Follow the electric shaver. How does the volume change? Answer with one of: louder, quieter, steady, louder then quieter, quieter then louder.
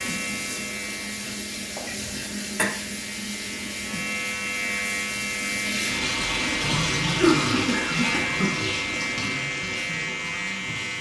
louder.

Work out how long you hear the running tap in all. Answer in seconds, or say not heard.
11 s.